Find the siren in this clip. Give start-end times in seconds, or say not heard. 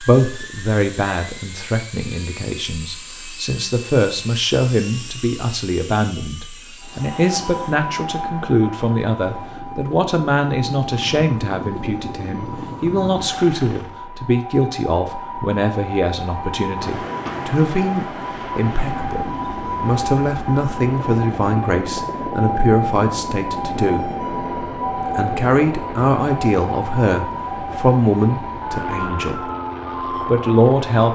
6.8-31.0.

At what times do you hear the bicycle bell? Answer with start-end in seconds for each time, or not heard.
not heard.